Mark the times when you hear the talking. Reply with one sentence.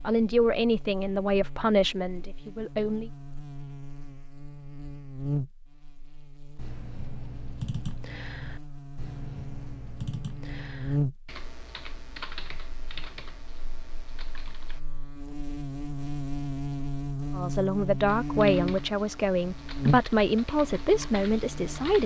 You can hear the talking from 0.0 to 3.1 s and from 17.4 to 22.0 s.